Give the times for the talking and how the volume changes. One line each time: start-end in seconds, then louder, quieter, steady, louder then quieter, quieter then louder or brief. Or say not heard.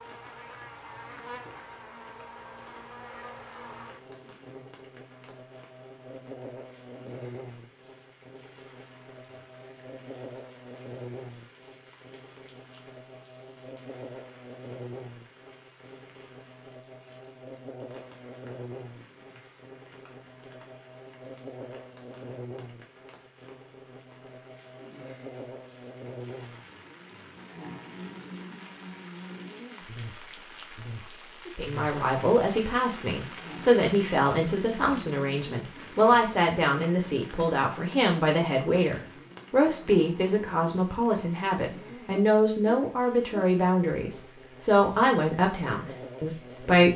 31.4-46.9 steady.